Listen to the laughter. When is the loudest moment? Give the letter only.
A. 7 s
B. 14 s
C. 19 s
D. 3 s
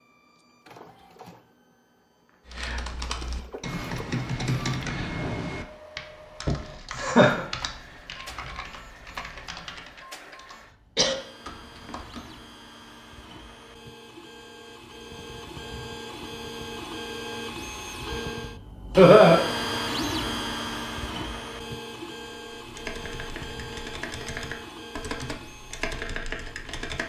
C.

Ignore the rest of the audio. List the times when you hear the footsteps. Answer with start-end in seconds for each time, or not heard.
not heard.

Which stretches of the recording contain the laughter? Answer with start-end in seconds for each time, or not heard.
6.5-7.5, 18.9-19.4.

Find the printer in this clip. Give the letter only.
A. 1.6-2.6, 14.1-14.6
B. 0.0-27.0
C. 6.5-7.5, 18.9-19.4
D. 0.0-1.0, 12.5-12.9
B.